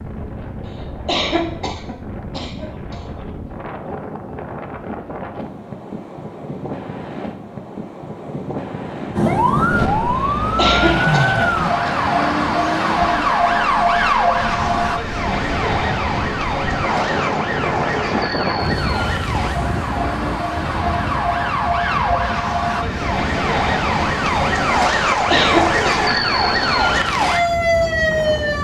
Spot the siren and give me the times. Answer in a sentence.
You can hear the siren from 9.2 to 28.5 s.